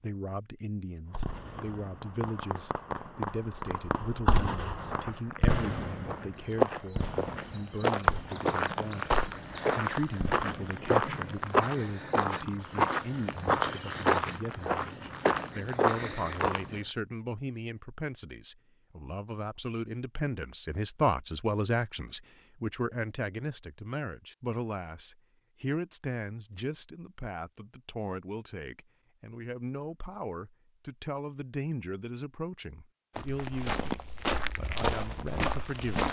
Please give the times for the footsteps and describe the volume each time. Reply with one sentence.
You can hear the footsteps from 4.8 to 16.8 s, at a steady volume; and briefly from 33.1 to 36.0 s.